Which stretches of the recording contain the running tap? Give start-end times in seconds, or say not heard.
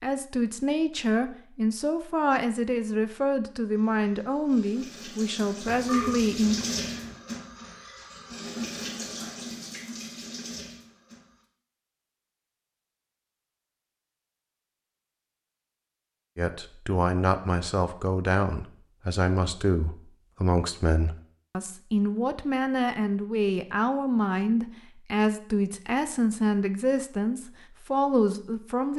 3.7-11.4.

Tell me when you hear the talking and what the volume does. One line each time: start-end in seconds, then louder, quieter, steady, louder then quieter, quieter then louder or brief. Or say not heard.
0.0-6.7 steady
16.4-28.9 steady.